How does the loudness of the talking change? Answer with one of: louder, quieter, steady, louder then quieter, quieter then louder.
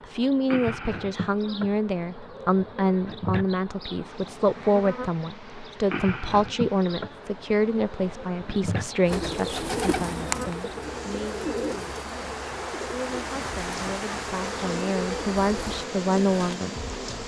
quieter then louder.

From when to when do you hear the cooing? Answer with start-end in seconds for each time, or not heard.
9.1-16.6.